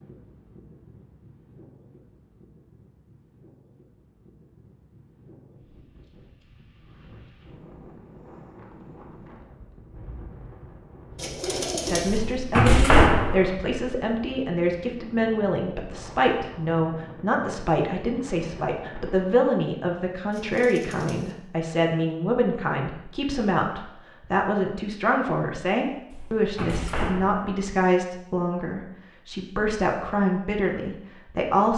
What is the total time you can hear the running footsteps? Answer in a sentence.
The running footsteps can't be heard in this clip.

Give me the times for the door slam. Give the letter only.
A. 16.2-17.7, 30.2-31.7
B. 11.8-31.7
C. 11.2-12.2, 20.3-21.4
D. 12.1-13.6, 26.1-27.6
D.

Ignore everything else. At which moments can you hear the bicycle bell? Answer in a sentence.
The bicycle bell can't be heard in this clip.